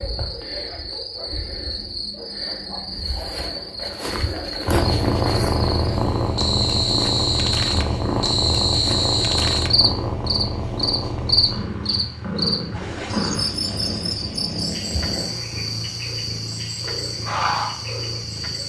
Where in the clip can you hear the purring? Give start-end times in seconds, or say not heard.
4.7-18.6.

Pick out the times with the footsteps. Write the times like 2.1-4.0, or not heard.
not heard.